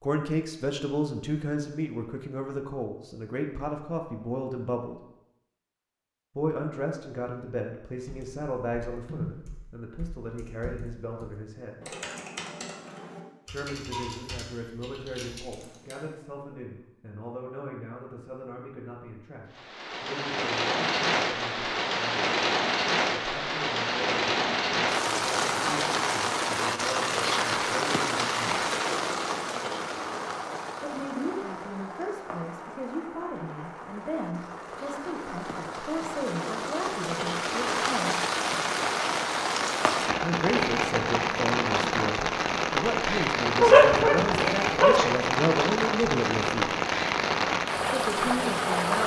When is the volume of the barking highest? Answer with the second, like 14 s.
44 s.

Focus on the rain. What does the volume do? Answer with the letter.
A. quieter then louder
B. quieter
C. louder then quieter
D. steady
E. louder
A.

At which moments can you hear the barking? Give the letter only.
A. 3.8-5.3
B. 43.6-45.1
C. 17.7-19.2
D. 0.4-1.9
B.